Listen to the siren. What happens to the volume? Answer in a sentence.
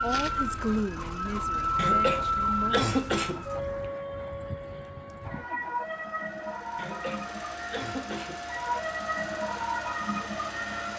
The loudness of the siren goes down, then up.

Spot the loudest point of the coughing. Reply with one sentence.
The loudest moment of the coughing is at 3 seconds.